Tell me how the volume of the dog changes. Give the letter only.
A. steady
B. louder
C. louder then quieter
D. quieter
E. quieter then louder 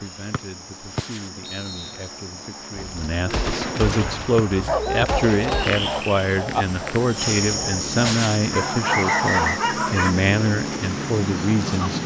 E.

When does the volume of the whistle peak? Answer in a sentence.
The loudest moment of the whistle is at 9 seconds.